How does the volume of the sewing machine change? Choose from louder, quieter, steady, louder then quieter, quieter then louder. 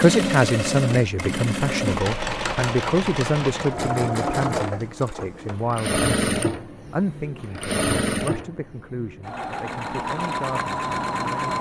steady.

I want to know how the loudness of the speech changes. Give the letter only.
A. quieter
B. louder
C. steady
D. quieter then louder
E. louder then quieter
A.